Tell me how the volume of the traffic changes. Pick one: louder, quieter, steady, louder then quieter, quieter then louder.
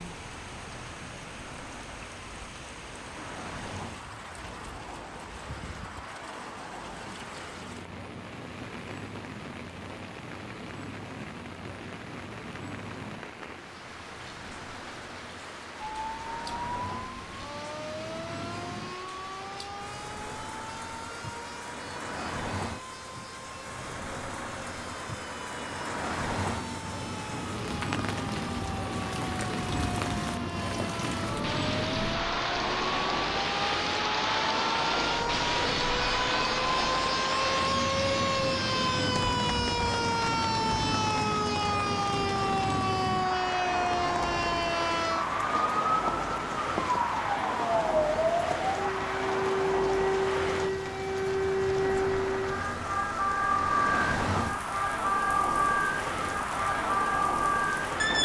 louder.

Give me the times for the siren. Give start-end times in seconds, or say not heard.
15.8-58.2.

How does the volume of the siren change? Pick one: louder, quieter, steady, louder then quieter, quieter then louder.
louder.